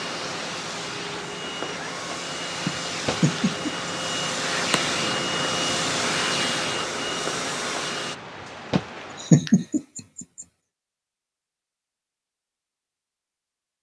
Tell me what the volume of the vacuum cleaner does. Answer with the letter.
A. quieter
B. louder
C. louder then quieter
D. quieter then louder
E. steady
B.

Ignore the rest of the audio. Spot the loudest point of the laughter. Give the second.
9 s.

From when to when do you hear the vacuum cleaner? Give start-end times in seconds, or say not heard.
0.0-8.2.